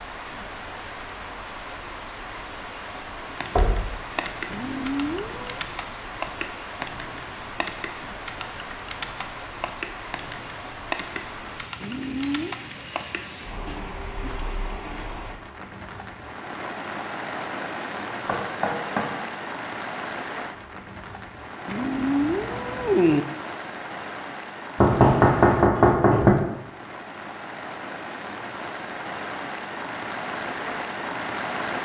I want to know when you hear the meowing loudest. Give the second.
23 s.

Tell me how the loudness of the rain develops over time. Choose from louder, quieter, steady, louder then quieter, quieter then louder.
steady.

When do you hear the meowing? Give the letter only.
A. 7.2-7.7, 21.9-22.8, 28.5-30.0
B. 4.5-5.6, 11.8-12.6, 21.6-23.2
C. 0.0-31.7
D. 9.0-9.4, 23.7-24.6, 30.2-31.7
B.